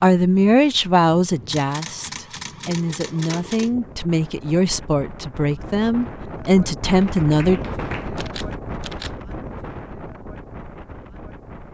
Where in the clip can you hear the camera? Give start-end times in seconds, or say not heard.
1.4-3.7, 8.2-9.1.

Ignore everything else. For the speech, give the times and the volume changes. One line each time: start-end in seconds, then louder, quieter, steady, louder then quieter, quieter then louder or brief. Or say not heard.
0.0-7.6 quieter then louder.